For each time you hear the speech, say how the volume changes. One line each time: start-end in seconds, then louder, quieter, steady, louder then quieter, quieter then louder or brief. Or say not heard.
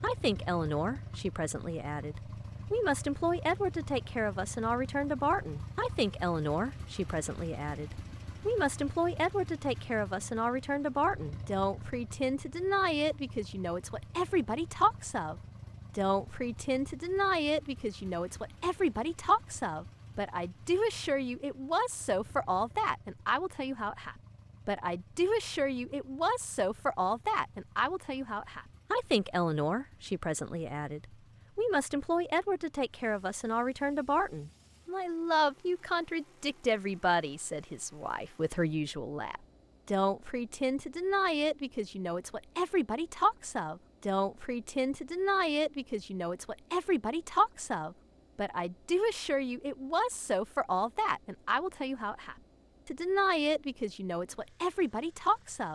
0.0-55.7 steady.